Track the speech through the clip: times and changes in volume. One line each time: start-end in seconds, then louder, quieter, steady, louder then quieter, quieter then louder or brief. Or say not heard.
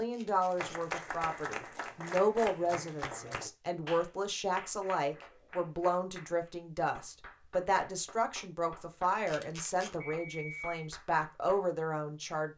0.0-12.5 steady.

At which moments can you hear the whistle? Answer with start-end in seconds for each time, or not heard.
10.0-10.8.